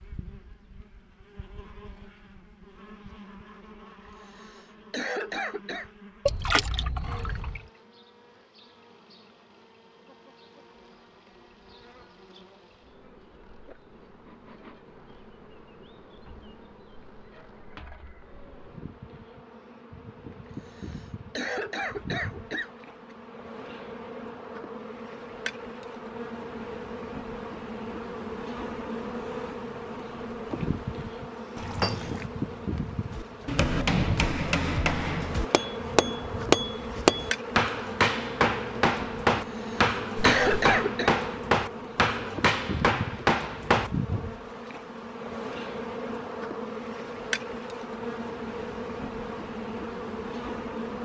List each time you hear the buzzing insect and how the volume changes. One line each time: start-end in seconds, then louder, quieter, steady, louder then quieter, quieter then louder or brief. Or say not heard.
0.0-51.0 louder.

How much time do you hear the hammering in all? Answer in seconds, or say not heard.
11 s.